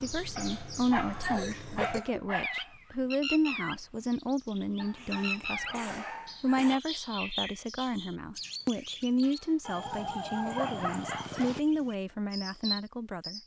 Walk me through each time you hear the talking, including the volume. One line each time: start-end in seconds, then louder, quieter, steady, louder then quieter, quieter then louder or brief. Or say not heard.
0.0-13.4 steady.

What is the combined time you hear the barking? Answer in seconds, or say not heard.
6 s.